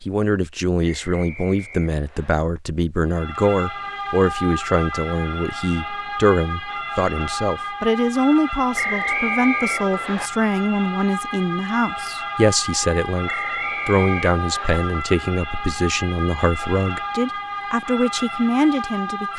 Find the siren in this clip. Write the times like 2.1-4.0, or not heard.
3.0-19.3.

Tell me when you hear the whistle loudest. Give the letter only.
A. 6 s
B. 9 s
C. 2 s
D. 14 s
B.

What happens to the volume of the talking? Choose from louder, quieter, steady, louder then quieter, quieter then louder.
steady.